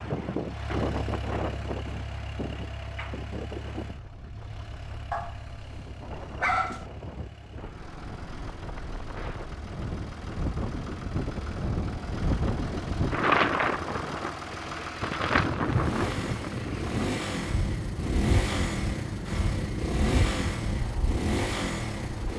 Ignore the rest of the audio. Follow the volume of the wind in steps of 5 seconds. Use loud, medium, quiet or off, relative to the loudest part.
medium, quiet, loud, loud, medium.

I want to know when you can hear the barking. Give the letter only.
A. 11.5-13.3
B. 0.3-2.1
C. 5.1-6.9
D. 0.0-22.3
C.